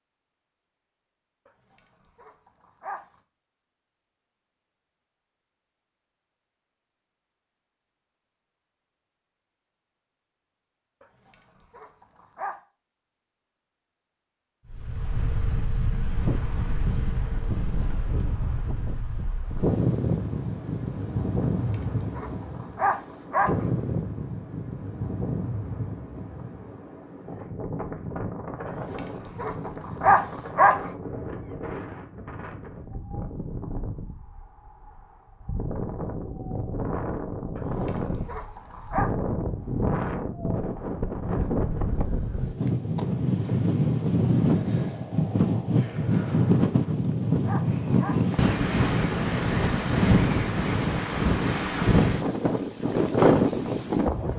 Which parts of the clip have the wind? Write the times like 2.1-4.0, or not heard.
14.7-54.3.